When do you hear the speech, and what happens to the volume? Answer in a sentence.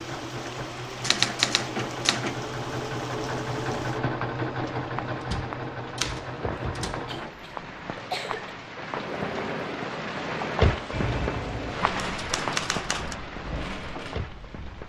The speech can't be heard in this clip.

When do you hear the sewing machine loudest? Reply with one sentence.
The volume of the sewing machine peaks at 4 seconds.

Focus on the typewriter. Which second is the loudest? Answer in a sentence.
The volume of the typewriter peaks at 1 second.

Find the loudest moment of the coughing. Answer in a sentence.
The volume of the coughing peaks at 8 seconds.